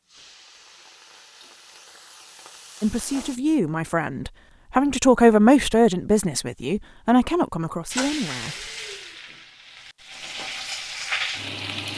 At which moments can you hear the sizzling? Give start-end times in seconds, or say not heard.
0.0-3.4, 7.9-11.9.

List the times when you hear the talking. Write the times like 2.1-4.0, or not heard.
2.8-8.7.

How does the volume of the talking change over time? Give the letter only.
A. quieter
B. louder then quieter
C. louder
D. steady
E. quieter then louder
B.